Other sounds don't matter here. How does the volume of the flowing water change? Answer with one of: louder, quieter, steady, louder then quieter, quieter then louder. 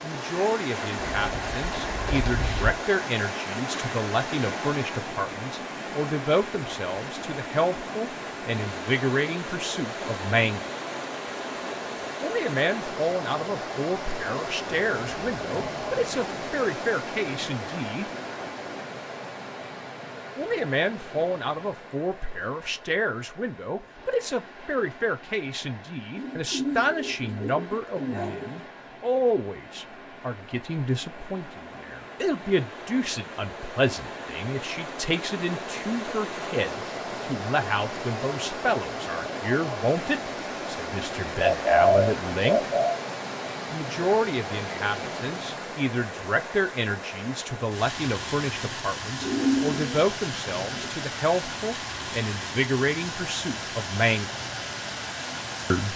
quieter then louder.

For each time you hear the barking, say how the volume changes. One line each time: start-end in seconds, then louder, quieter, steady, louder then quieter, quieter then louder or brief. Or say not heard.
not heard.